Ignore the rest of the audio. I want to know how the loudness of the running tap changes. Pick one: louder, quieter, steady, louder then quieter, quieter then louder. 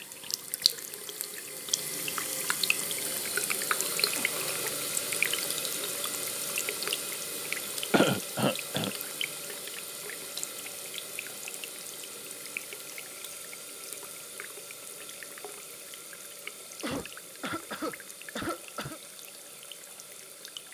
quieter.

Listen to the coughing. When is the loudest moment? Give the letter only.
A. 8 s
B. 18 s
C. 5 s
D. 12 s
A.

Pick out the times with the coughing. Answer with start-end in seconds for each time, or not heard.
4.2-4.8, 7.9-8.9, 16.8-19.0.